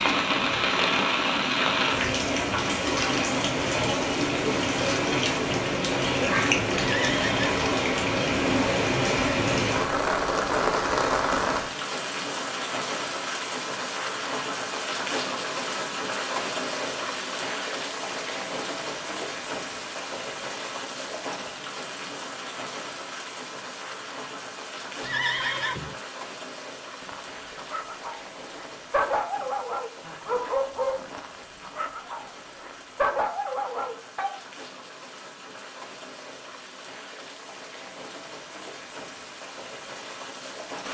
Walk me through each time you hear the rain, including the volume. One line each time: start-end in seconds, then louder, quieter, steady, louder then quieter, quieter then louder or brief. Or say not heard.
0.0-40.8 quieter.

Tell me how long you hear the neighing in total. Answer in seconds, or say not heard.
2 s.